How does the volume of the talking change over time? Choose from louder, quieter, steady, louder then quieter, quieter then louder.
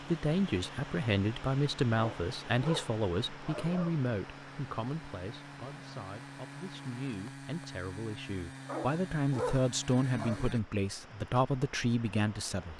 quieter then louder.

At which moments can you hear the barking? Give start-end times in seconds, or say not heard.
1.9-4.0, 8.7-10.4.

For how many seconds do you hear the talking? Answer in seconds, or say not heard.
13 s.